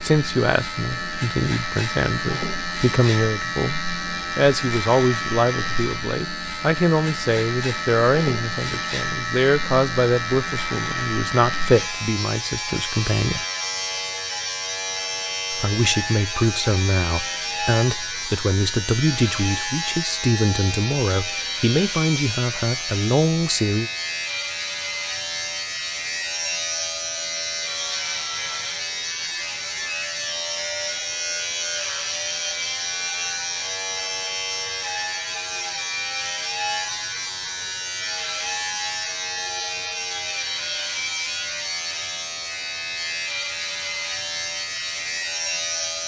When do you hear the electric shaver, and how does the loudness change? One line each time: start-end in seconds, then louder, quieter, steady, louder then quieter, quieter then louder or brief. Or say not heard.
0.0-46.0 steady.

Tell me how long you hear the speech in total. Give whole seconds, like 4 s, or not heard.
22 s.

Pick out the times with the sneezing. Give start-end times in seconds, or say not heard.
not heard.